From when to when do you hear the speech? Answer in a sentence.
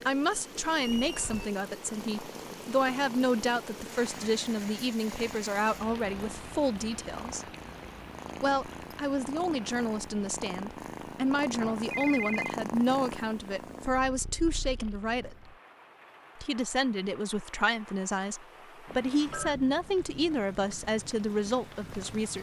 The speech can be heard from 0.0 to 7.5 s, from 8.4 to 15.5 s and from 16.4 to 22.3 s.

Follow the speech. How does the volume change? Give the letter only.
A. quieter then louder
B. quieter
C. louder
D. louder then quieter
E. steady
E.